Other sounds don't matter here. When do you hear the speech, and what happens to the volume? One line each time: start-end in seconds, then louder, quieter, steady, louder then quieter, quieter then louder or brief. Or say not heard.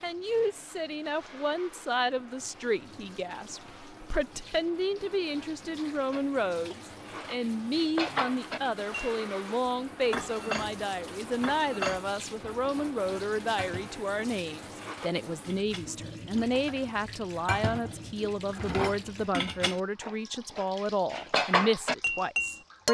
0.0-22.8 steady.